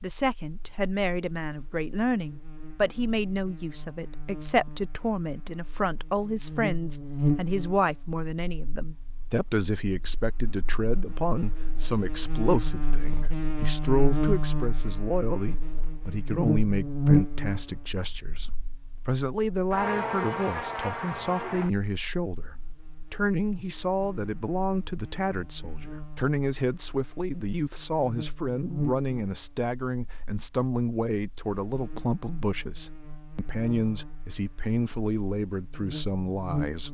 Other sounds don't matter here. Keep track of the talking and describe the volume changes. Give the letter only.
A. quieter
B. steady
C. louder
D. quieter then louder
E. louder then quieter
B.